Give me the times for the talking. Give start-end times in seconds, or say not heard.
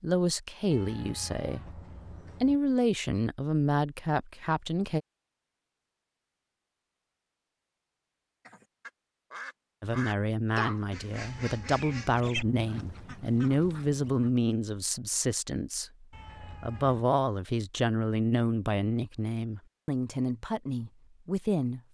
0.0-1.8, 2.4-5.0, 9.8-21.8.